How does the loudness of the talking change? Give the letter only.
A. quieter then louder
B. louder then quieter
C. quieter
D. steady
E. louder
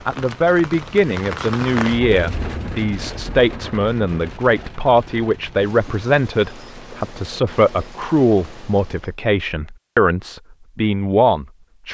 D.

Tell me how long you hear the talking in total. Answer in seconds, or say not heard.
12 s.